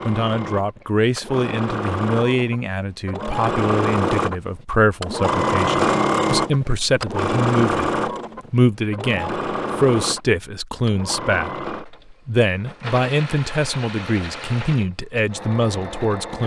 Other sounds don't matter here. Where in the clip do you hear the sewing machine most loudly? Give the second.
6 s.